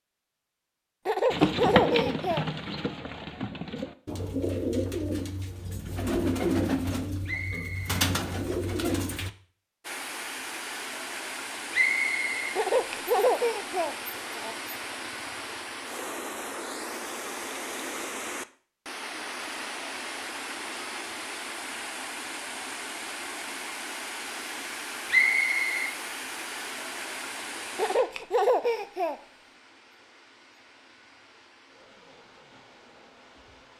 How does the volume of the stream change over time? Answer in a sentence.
The volume of the stream goes down.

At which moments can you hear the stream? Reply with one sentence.
You can hear the stream from 9.8 to 33.7 s.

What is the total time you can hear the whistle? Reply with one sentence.
The whistle can be heard for 2 seconds in total.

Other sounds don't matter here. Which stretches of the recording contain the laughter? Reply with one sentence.
The laughter can be heard from 1.1 to 2.5 s, from 12.6 to 14.6 s and from 27.8 to 29.2 s.